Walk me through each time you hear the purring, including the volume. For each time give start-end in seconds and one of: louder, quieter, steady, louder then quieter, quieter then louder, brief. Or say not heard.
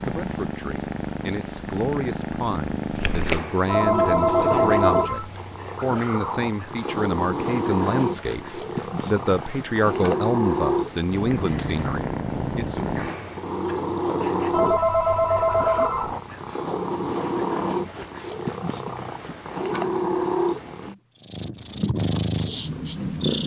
0.0-23.4 steady.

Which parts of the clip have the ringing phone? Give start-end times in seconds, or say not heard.
3.6-5.3, 14.5-16.1.